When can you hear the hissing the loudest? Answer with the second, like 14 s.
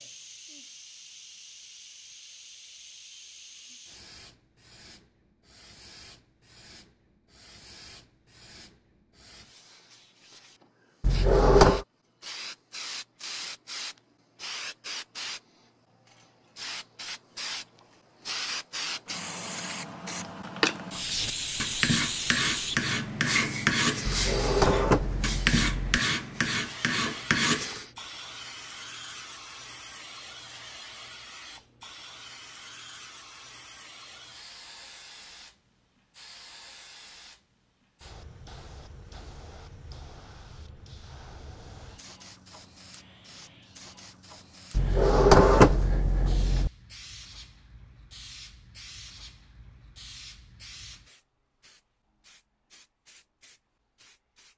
21 s.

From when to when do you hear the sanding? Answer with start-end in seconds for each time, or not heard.
21.0-27.9.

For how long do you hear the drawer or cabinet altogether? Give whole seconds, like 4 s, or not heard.
5 s.